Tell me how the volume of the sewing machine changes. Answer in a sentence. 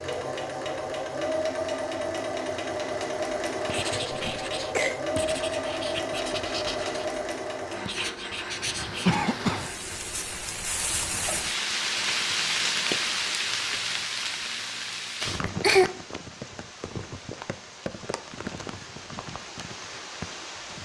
The loudness of the sewing machine goes down.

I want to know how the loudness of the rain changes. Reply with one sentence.
The loudness of the rain goes up, then down.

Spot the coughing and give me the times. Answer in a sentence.
You can hear the coughing from 4.1 to 5.0 s, from 9.1 to 9.7 s and from 15.2 to 15.9 s.